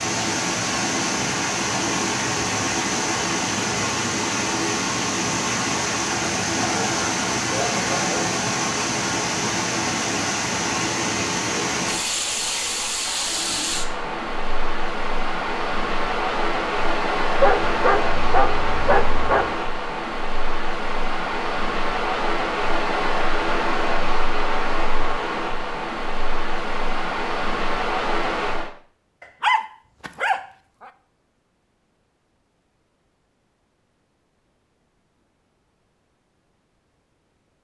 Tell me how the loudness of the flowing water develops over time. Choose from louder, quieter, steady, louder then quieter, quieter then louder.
steady.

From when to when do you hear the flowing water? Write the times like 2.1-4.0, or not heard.
0.0-28.7.